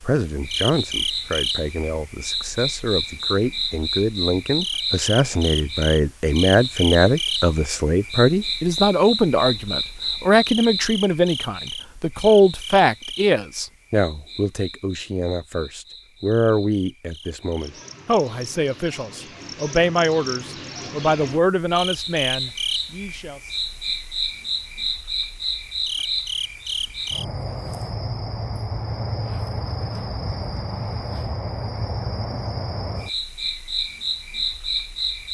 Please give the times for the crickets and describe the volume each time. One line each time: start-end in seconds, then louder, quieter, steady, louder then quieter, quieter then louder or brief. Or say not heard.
0.0-35.3 quieter then louder.